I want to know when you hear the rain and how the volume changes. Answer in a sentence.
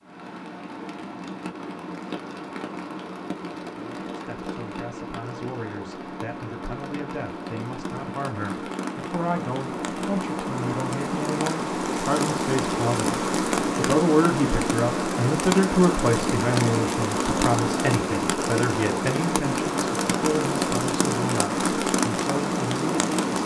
The rain can be heard from 0.0 to 23.4 s, getting louder.